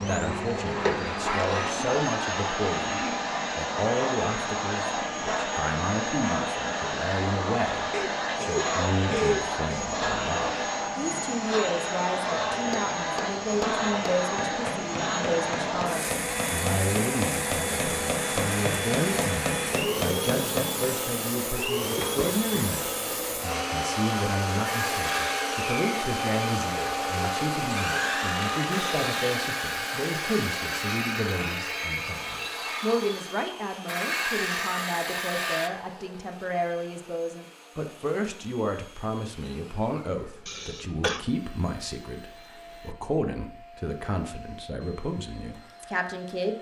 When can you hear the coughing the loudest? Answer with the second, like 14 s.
9 s.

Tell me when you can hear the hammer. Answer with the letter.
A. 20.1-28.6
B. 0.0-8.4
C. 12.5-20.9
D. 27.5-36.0
C.